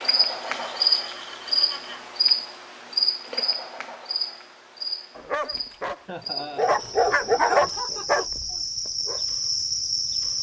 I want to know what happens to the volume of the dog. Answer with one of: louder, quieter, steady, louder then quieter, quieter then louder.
louder then quieter.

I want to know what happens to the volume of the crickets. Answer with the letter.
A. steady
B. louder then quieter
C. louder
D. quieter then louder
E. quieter
D.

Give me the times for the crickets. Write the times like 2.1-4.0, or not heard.
0.0-10.3.